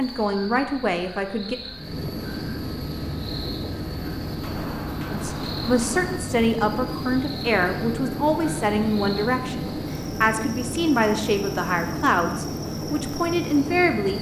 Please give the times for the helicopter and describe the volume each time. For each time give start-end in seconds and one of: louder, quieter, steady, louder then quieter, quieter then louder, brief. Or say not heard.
1.7-14.1 steady.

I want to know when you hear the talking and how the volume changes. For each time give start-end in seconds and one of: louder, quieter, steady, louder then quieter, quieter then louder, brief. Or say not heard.
0.0-1.6 brief
5.1-14.1 steady.